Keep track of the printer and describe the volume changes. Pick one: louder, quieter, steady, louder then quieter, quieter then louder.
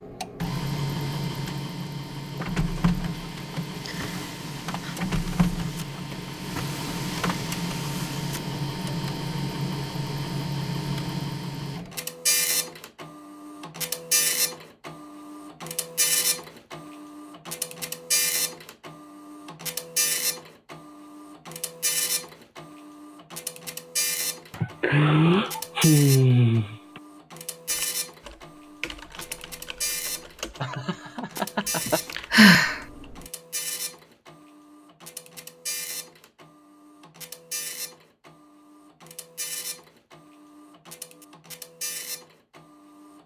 quieter.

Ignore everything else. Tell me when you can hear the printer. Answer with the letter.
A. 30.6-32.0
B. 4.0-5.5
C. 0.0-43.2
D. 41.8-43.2
C.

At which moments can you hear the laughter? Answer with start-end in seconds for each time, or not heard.
30.6-32.0.